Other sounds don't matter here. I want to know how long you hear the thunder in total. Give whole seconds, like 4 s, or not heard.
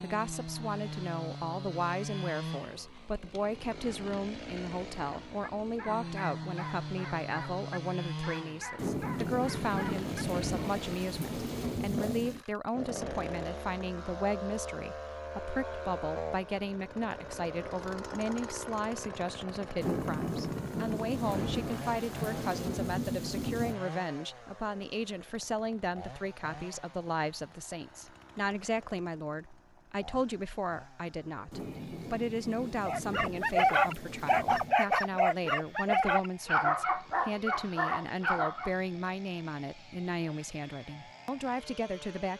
11 s.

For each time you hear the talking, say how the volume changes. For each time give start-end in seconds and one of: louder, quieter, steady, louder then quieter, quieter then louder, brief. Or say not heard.
0.0-42.3 steady.